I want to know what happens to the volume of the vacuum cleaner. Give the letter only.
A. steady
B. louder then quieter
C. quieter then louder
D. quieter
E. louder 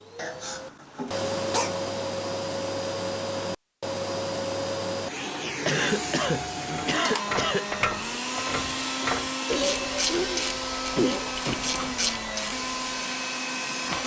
A.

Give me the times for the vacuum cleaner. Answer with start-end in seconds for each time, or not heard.
0.0-14.0.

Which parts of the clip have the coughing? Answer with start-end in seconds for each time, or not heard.
0.1-1.7, 5.7-7.7, 9.4-11.3.